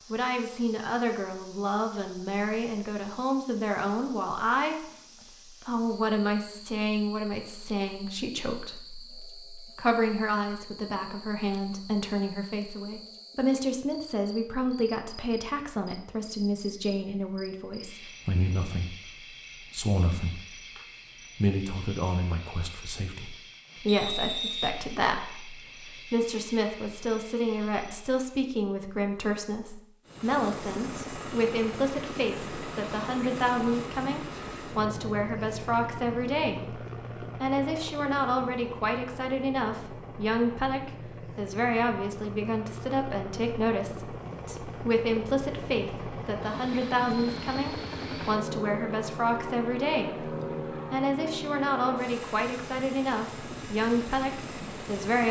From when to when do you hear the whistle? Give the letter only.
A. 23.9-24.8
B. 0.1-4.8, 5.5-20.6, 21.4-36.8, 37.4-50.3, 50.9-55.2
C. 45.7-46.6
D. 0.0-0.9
A.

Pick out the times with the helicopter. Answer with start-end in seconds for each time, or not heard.
30.1-55.2.